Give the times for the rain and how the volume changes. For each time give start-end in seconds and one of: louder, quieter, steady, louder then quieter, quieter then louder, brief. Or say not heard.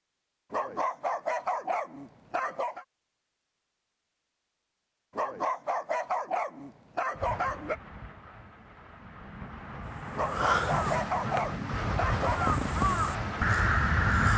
7.2-14.3 louder.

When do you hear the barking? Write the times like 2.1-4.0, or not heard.
0.5-2.9, 5.2-7.8, 10.2-12.6.